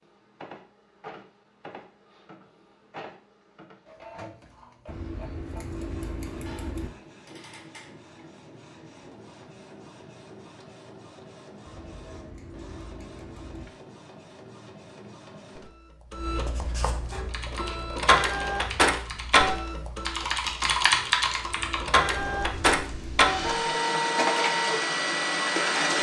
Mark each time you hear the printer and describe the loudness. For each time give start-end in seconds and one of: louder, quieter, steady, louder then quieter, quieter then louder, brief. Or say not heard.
0.0-25.9 louder.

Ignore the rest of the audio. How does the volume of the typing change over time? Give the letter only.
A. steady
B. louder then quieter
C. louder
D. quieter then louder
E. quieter
B.